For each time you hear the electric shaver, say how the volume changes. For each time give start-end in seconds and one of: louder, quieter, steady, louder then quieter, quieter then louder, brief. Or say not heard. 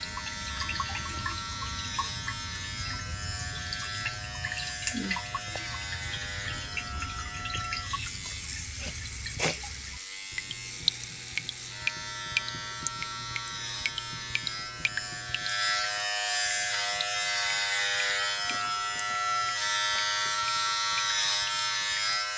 0.0-22.3 louder.